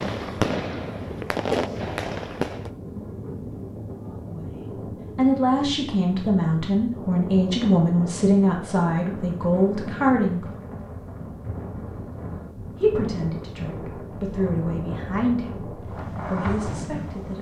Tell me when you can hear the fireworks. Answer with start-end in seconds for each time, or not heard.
0.0-2.7, 15.7-17.1.